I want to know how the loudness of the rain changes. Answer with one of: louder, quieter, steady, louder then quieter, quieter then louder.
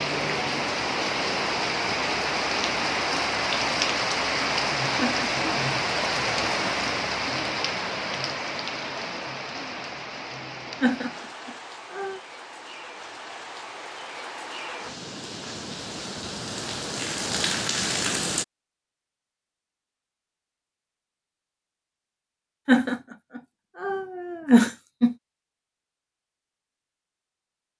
quieter then louder.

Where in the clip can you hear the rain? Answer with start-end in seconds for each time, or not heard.
0.0-18.4.